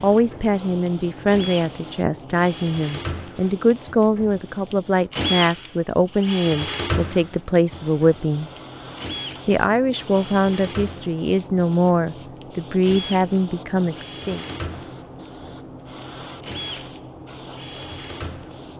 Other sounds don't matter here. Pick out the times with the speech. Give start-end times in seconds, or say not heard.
0.0-8.5, 9.4-14.4.